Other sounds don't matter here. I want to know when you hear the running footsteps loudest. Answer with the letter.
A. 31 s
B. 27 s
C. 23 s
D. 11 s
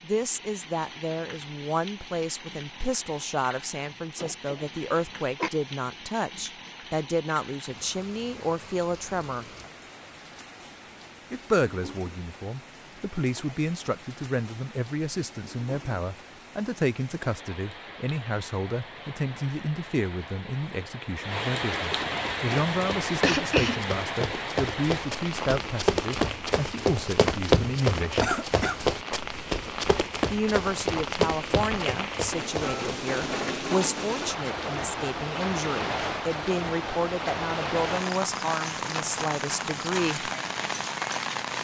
B.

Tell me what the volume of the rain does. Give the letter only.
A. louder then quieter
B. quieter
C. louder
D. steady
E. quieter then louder
C.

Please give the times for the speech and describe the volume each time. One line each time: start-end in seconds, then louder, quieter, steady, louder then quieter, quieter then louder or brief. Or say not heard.
0.0-9.4 steady
11.3-28.2 steady
30.3-40.3 steady.